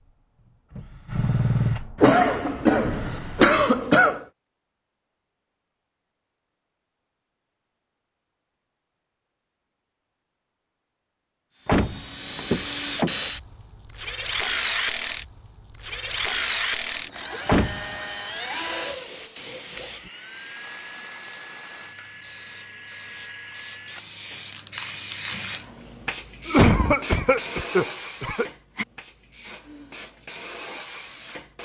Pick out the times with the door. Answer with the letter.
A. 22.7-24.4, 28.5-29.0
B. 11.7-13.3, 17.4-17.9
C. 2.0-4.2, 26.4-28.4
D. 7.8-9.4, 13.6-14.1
B.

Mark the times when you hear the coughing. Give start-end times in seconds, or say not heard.
2.0-4.2, 26.4-28.4.